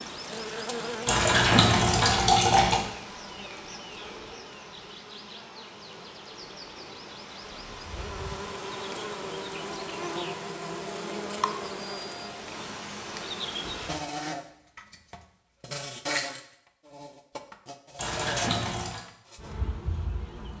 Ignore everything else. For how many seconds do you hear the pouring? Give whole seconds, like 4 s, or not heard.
3 s.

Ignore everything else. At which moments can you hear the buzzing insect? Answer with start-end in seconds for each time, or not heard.
0.0-20.5.